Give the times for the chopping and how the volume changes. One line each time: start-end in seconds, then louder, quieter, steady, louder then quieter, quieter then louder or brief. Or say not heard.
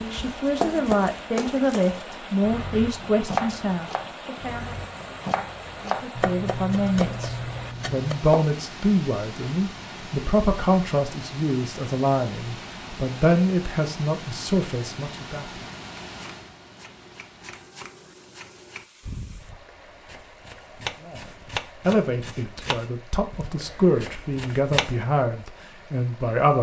0.0-8.5 quieter then louder
15.9-24.9 louder then quieter.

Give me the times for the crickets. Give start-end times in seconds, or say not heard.
not heard.